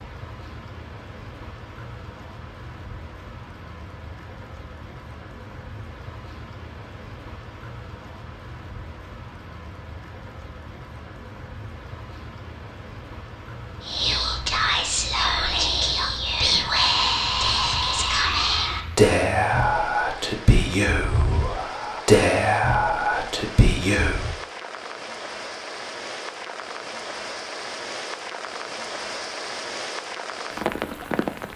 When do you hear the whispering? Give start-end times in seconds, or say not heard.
13.8-24.4.